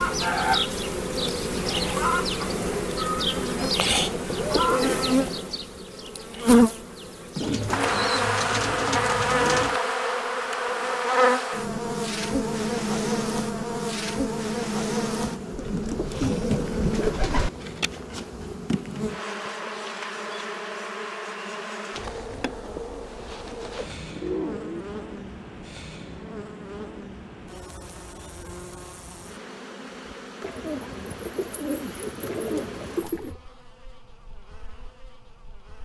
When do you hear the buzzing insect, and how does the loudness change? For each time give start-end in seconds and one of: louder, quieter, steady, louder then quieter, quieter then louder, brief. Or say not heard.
0.0-35.8 quieter.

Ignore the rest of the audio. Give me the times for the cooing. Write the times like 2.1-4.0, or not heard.
3.5-5.2, 7.4-9.8, 15.6-17.5, 21.9-24.9, 30.4-33.4.